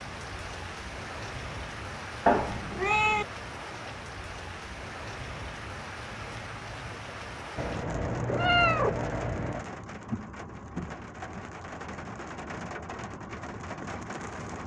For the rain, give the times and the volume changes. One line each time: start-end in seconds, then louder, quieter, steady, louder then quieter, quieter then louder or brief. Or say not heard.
0.0-14.6 steady.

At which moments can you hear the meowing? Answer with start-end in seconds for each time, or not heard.
2.2-3.2, 7.5-9.7.